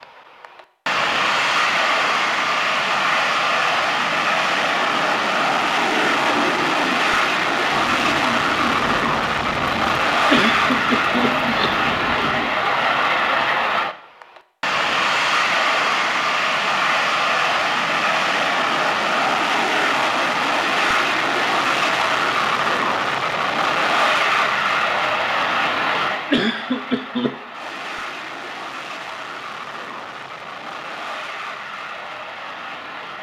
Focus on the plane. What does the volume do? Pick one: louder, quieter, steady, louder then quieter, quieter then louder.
quieter.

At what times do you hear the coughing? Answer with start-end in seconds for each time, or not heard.
10.2-11.9, 26.2-27.4.